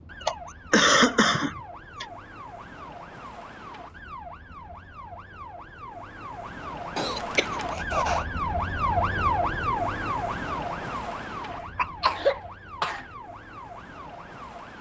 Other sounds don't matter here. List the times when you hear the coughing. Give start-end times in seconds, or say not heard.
0.2-2.0, 7.0-8.2, 11.5-13.1.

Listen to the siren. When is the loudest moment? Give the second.
9 s.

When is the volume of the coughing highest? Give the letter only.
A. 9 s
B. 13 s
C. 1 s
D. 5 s
C.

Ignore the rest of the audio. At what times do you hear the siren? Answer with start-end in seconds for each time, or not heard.
0.0-14.7.